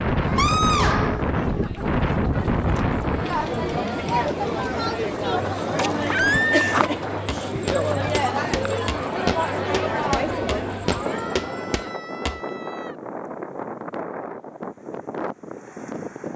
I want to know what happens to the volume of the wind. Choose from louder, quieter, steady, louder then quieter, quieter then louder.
quieter.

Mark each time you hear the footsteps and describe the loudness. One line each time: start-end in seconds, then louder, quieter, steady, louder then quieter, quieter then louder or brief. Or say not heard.
5.3-12.4 steady.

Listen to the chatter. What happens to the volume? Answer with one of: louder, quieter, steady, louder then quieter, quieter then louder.
louder.